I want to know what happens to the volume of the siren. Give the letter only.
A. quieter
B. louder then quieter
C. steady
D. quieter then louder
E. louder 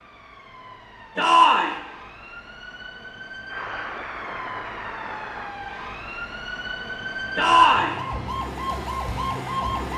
E.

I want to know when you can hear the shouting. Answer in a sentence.
The shouting can be heard from 1.1 to 1.8 s and from 7.3 to 8.0 s.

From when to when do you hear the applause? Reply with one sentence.
The applause can be heard from 3.5 to 5.5 s.